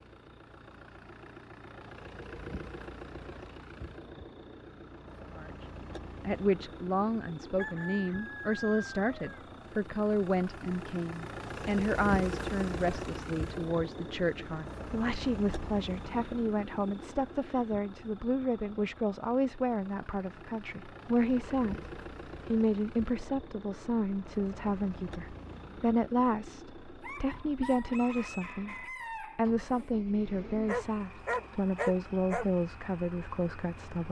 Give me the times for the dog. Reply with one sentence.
The dog can be heard from 30.6 to 32.5 s.